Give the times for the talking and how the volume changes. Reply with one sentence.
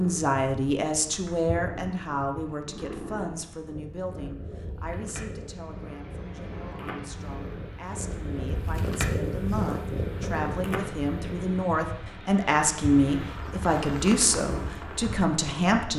You can hear the talking from 0.0 to 15.9 s, getting quieter then louder.